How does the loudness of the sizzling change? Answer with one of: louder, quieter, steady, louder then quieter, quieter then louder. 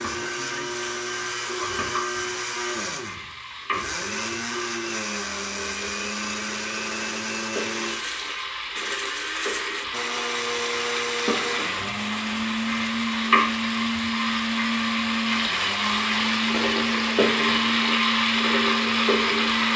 louder.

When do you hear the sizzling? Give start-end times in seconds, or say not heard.
0.0-19.7.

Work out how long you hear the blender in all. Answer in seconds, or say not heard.
20 s.